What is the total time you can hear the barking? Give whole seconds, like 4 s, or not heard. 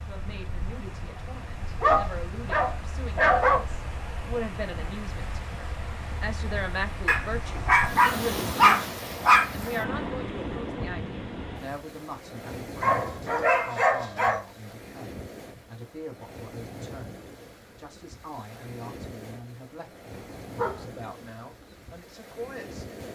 7 s.